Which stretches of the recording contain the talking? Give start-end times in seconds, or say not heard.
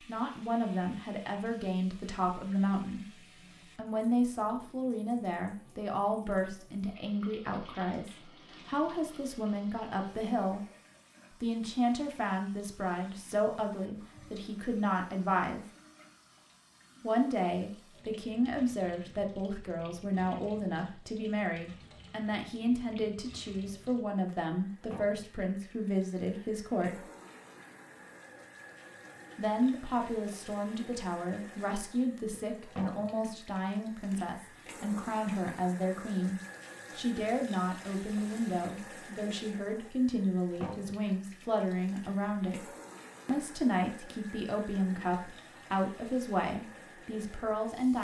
0.0-10.7, 11.4-15.7, 17.0-27.0, 29.4-47.9.